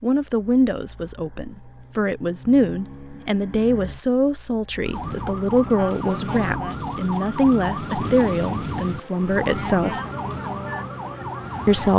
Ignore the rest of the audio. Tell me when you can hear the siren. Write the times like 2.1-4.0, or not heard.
4.8-11.9.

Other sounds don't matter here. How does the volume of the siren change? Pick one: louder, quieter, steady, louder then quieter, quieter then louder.
steady.